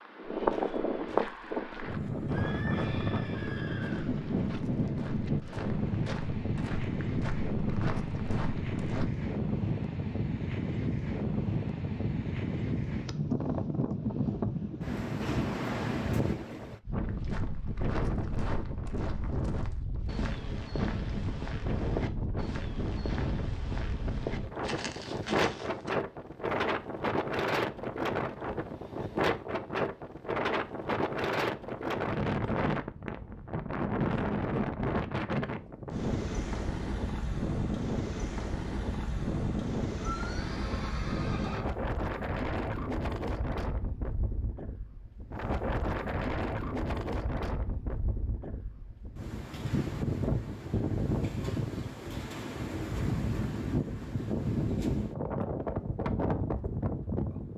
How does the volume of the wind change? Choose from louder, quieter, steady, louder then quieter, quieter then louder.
steady.